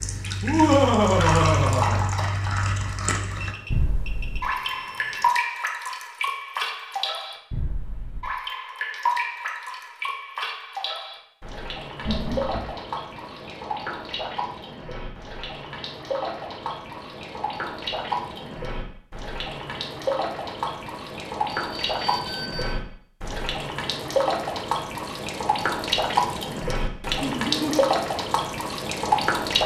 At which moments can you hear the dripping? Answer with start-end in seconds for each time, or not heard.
0.0-29.6.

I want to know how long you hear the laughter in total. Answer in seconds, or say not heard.
3 s.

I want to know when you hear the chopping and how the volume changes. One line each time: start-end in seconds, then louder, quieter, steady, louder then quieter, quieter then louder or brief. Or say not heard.
not heard.